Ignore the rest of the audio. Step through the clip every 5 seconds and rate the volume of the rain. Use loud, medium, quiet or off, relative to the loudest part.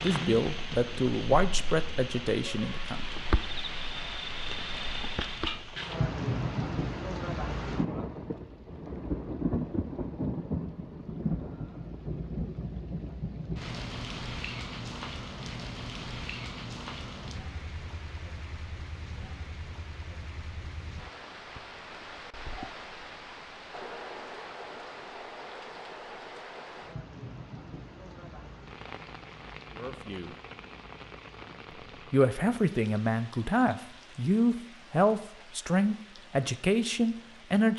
loud, loud, loud, medium, medium, medium, quiet, quiet.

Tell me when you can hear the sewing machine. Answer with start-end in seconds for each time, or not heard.
not heard.